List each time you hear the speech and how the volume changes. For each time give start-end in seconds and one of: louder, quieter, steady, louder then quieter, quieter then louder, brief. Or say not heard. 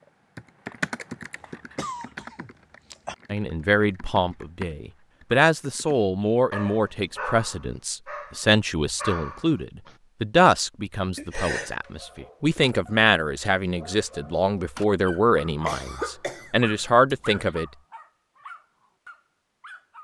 3.3-17.6 steady.